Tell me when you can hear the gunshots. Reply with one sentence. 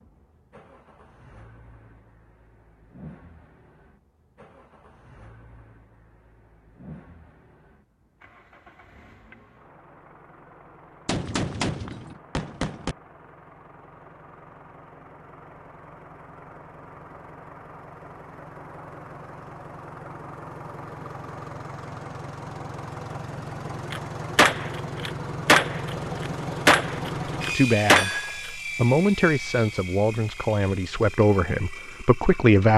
The gunshots can be heard from 11.1 to 12.9 s and from 23.9 to 28.5 s.